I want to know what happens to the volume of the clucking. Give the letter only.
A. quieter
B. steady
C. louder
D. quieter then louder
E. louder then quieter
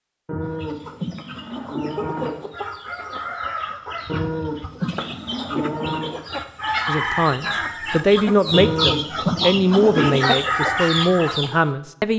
C.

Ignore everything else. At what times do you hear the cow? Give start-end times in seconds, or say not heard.
0.2-2.4, 4.0-6.2, 8.5-10.2.